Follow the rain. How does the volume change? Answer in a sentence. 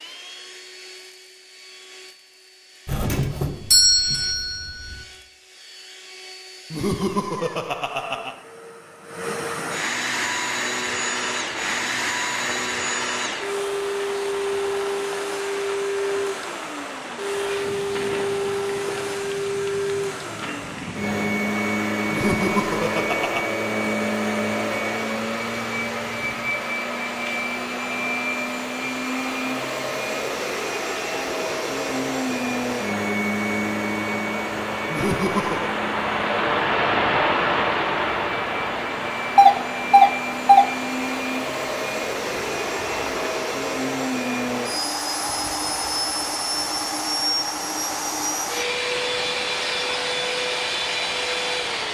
The volume of the rain goes up, then down.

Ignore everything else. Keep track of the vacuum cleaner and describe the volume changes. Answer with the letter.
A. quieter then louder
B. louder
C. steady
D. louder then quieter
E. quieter
B.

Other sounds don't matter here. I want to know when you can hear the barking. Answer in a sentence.
You can't hear the barking here.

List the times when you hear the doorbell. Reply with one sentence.
You can hear the doorbell from 2.9 to 4.6 s and from 39.4 to 40.6 s.